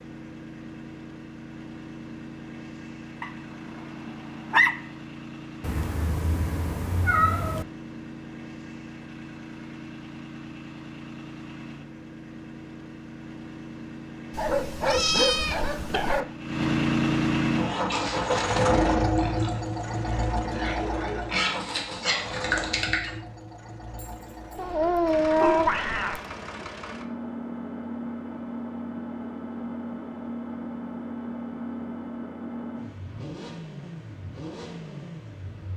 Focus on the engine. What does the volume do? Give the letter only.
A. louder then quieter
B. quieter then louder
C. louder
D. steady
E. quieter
A.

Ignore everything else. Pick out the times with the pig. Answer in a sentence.
You can hear the pig from 17.7 to 23.1 s.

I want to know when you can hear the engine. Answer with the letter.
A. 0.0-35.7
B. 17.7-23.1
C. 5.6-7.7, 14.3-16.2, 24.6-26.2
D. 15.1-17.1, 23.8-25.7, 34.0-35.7
A.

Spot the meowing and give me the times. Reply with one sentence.
You can hear the meowing from 5.6 to 7.7 s, from 14.3 to 16.2 s and from 24.6 to 26.2 s.